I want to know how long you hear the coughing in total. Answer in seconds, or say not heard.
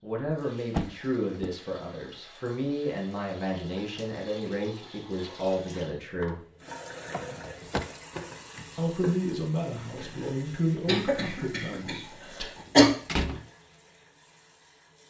2 s.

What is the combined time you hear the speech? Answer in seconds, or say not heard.
10 s.